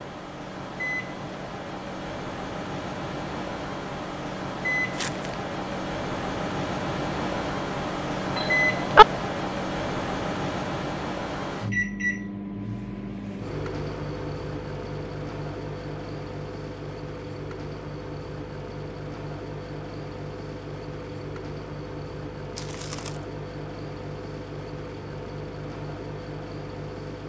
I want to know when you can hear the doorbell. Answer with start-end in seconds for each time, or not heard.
8.3-9.1.